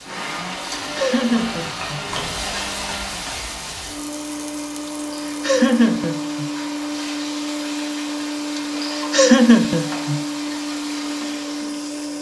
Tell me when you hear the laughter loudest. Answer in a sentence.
The loudest moment of the laughter is at 9 seconds.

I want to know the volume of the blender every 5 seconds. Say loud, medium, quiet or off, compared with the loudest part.
medium, loud, loud.